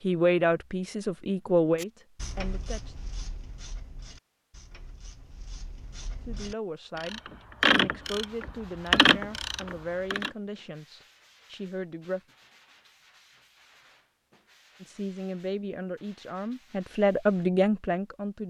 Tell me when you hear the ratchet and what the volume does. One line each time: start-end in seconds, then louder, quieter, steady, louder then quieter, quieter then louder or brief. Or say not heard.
1.8-10.3 quieter then louder.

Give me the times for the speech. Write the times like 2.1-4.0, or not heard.
0.0-3.0, 6.2-12.2, 14.8-18.4.